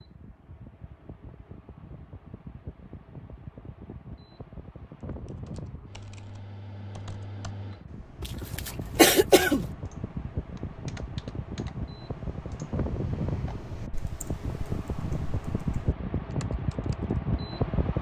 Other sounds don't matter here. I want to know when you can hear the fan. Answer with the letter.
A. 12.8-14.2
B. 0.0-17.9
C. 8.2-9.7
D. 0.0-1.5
B.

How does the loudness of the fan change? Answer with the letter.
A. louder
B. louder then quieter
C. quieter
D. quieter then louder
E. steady
A.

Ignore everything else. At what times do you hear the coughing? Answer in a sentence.
The coughing can be heard from 8.2 to 9.7 s.